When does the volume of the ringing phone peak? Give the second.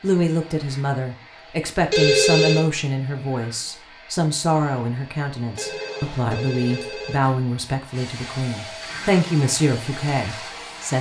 2 s.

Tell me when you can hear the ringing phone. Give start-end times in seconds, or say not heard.
1.9-2.7, 5.5-7.4.